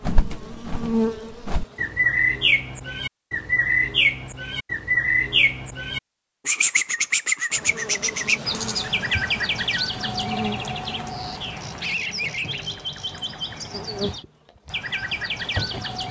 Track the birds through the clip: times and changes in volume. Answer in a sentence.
The birds can be heard from 0.0 to 16.0 s, getting quieter.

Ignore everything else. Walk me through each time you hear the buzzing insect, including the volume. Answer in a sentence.
The buzzing insect can be heard briefly from 0.0 to 1.9 s; and from 7.5 to 16.0 s, getting quieter then louder.